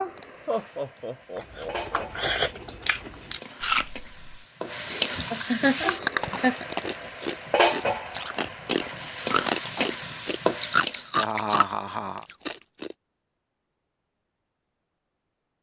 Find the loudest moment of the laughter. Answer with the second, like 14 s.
6 s.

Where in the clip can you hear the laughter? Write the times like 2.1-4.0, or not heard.
0.5-2.0, 5.3-6.7, 11.2-12.2.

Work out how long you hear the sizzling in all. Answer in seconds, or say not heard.
11 s.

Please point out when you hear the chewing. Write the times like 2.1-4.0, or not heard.
1.6-12.9.